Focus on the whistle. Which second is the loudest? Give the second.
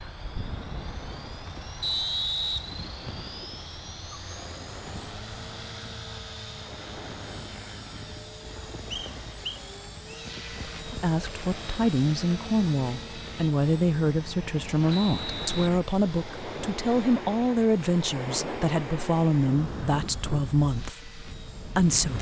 2 s.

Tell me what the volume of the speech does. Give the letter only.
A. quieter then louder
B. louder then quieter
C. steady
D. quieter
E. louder
C.